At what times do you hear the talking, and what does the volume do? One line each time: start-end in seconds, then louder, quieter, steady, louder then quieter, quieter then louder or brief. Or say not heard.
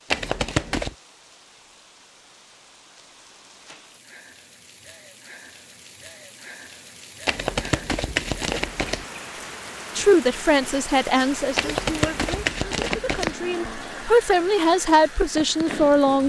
9.9-16.2 quieter then louder.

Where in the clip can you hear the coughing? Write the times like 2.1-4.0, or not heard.
not heard.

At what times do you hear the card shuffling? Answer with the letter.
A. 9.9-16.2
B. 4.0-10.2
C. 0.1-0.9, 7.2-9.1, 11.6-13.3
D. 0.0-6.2
C.